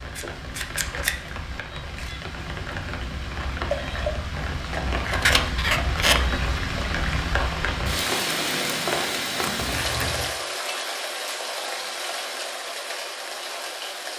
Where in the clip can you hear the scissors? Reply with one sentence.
You can hear the scissors from 0.1 to 1.3 s, from 5.0 to 6.4 s and from 9.6 to 10.3 s.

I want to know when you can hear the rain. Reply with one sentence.
You can hear the rain from 0.0 to 14.1 s.